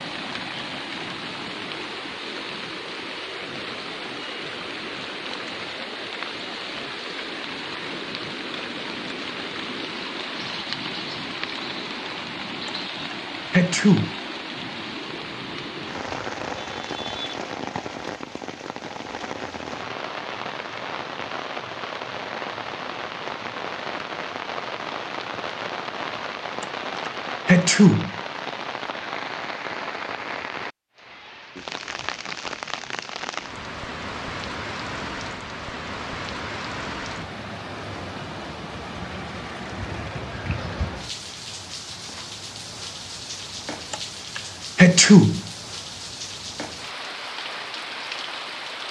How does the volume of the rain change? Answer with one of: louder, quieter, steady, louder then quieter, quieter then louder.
steady.